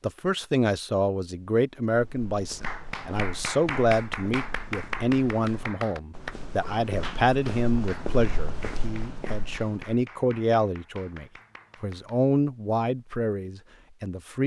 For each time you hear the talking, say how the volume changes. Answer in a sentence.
You can hear the talking from 0.0 to 14.4 s, at a steady volume.